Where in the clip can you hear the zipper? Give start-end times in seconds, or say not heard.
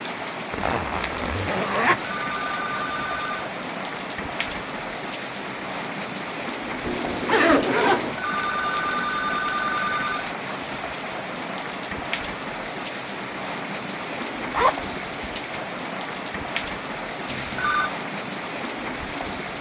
0.5-2.0, 6.8-8.2, 14.5-14.9.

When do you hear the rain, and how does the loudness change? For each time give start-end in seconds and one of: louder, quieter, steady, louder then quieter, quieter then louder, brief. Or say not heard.
0.0-19.5 steady.